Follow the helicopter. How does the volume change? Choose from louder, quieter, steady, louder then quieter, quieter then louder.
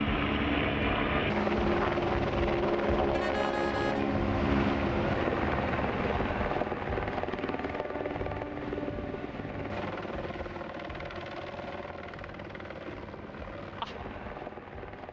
quieter.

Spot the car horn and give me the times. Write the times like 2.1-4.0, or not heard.
3.1-4.0.